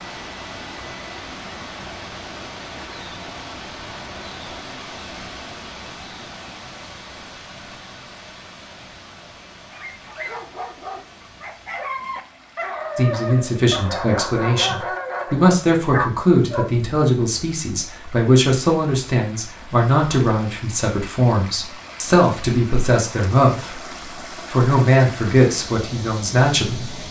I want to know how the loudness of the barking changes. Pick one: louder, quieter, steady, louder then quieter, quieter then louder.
louder.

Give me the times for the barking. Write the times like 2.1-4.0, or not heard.
9.7-16.8.